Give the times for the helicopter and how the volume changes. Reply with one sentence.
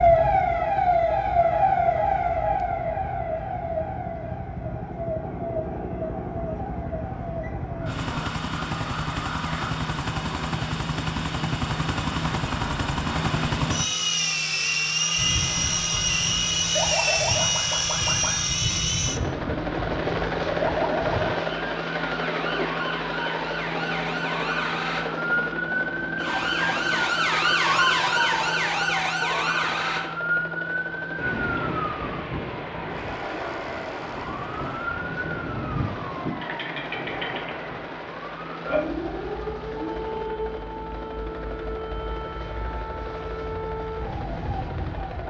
You can hear the helicopter from 0.0 to 45.2 s, getting louder then quieter.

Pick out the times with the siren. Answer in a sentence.
You can hear the siren from 0.0 to 9.8 s and from 15.2 to 45.2 s.